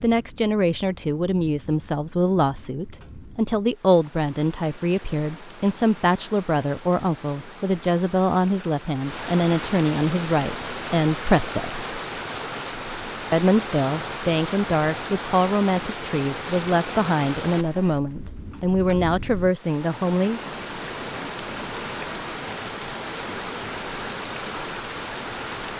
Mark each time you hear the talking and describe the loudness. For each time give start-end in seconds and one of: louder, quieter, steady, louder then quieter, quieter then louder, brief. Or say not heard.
0.0-11.8 steady
13.3-20.4 steady.